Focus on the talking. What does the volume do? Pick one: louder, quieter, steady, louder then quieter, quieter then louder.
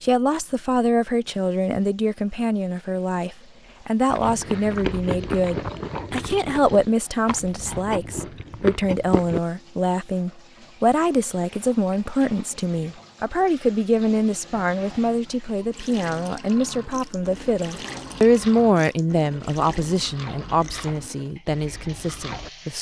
steady.